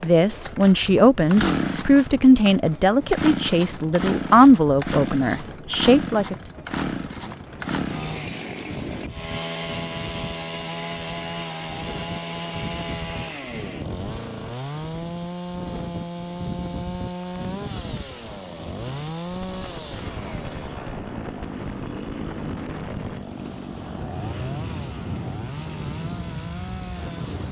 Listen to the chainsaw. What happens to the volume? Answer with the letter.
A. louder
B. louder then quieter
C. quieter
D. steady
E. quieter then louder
C.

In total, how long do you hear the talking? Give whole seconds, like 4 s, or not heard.
6 s.